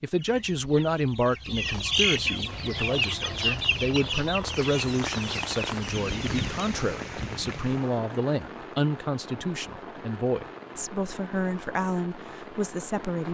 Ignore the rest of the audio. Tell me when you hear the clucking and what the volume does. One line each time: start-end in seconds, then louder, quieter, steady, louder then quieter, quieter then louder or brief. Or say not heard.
0.1-6.8 louder then quieter.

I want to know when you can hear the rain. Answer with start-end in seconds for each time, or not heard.
2.5-13.2.